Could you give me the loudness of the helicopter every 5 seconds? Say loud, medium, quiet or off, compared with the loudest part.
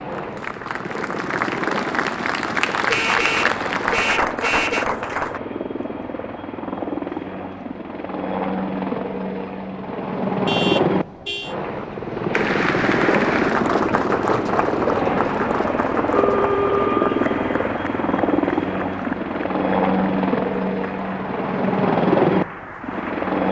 medium, medium, loud, loud, loud.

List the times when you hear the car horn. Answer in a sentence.
You can hear the car horn from 2.9 to 4.8 s, from 10.4 to 11.6 s and from 16.1 to 17.6 s.